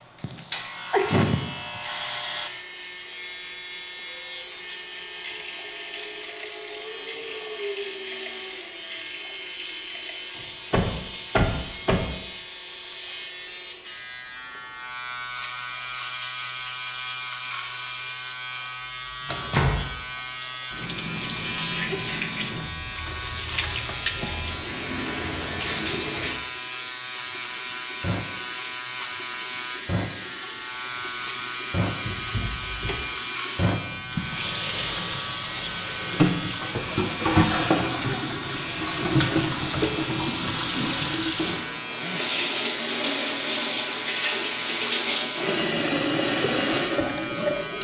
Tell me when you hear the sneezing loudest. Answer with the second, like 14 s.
1 s.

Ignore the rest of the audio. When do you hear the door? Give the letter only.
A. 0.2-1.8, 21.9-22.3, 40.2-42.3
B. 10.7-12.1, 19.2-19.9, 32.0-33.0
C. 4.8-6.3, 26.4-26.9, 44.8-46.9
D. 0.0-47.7
B.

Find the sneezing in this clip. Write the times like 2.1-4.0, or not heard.
0.2-1.8, 21.9-22.3, 40.2-42.3.